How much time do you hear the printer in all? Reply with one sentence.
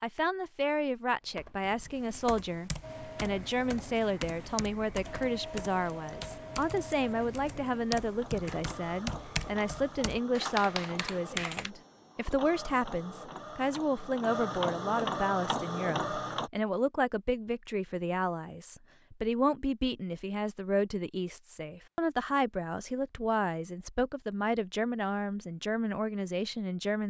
The printer can be heard for 14 seconds in total.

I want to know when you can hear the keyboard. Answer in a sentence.
The keyboard can be heard from 1.2 to 11.7 s.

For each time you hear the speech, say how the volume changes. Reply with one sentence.
You can hear the speech from 0.0 to 27.0 s, at a steady volume.